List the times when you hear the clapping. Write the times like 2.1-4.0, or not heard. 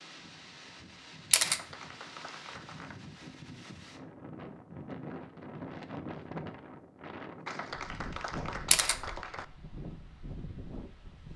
1.4-3.0, 7.5-9.4.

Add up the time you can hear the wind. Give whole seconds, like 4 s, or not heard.
11 s.